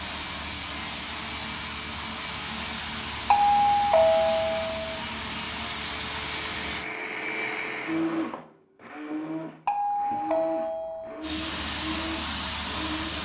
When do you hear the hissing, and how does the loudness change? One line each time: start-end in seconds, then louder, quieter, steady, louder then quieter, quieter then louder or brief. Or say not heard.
0.0-6.8 steady
11.2-13.2 brief.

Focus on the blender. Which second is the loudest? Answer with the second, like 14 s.
8 s.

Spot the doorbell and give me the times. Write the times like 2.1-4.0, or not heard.
3.3-5.0, 9.7-11.2.